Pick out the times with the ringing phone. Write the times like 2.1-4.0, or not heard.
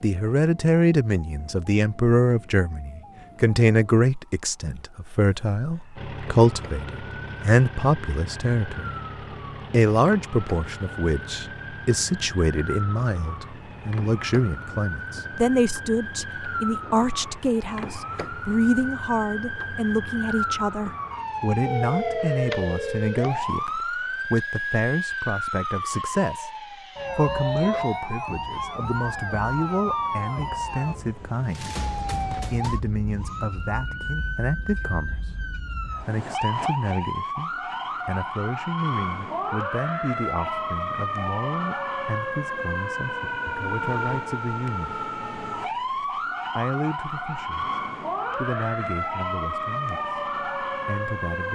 21.5-23.1.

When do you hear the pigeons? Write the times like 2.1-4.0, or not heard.
not heard.